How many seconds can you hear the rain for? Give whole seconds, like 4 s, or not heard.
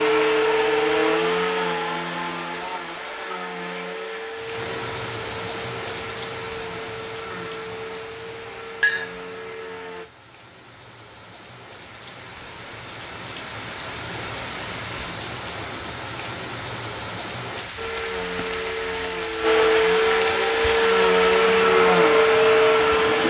19 s.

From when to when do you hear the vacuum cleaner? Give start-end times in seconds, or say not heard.
0.0-10.1, 17.8-23.2.